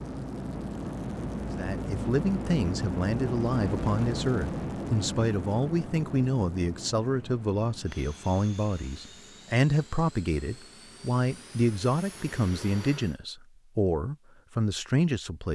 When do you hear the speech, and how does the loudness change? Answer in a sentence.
The speech can be heard from 1.6 to 15.5 s, at a steady volume.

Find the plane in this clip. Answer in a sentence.
You can hear the plane from 0.0 to 13.2 s.